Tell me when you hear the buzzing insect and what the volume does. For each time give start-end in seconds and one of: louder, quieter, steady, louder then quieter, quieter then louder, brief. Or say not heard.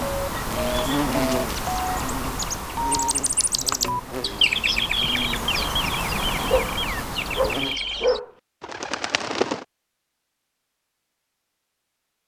0.0-7.8 quieter then louder.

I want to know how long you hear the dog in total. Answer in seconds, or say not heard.
2 s.